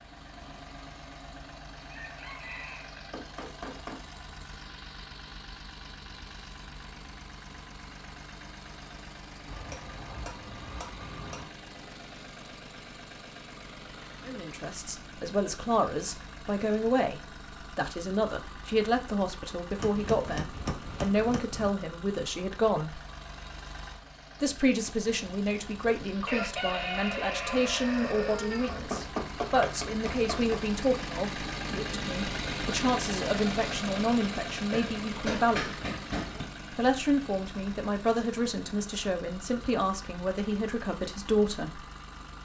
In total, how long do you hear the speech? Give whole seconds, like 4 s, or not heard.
25 s.